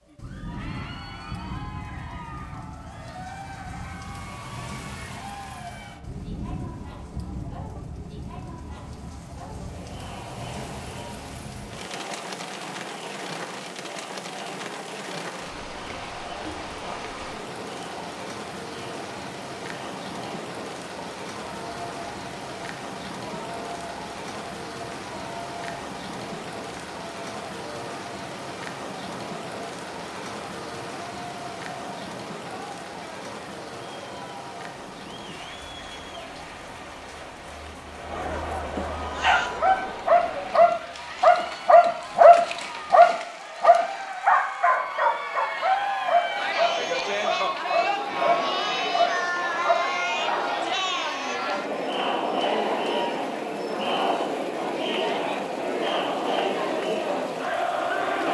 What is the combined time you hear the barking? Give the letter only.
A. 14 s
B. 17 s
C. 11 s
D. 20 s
C.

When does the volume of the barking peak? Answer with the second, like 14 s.
42 s.